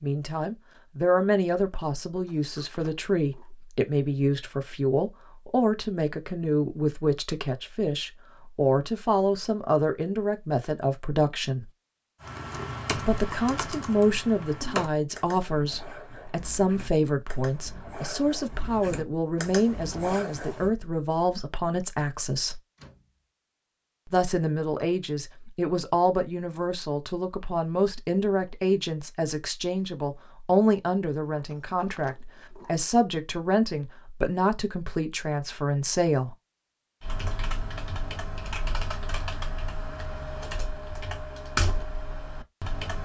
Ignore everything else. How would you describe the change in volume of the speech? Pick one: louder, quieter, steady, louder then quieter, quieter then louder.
steady.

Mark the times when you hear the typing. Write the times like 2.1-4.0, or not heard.
12.2-20.8, 37.0-43.0.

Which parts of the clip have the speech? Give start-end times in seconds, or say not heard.
0.0-11.7, 12.9-22.6, 24.1-36.4.